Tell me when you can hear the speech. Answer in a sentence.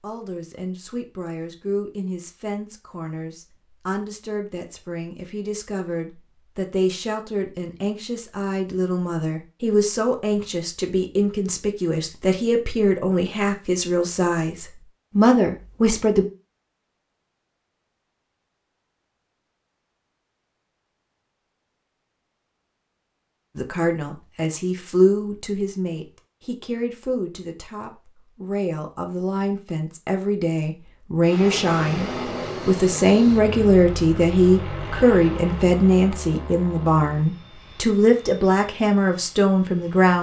You can hear the speech from 0.0 to 16.2 s and from 23.6 to 40.1 s.